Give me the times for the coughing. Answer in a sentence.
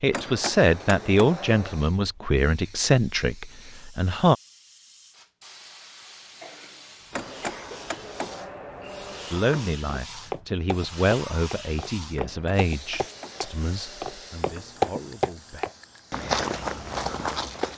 The coughing can be heard from 6.4 to 7.8 s.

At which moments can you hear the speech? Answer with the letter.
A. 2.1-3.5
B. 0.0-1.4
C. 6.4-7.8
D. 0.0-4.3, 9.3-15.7
D.